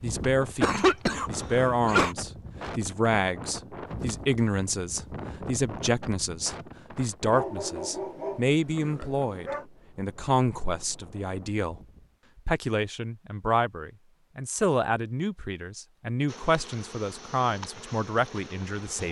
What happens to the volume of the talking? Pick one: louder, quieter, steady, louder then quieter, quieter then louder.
steady.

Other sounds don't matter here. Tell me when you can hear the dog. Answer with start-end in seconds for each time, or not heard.
7.2-9.7.